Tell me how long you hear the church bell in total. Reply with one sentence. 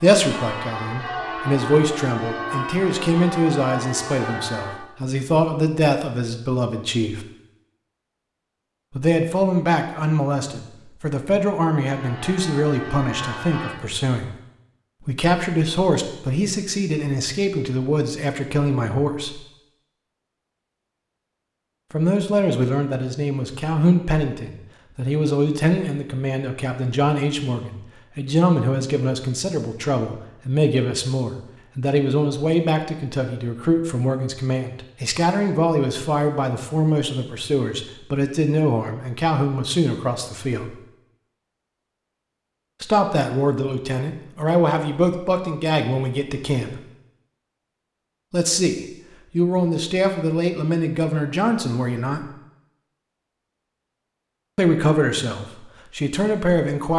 The church bell can be heard for 7 seconds in total.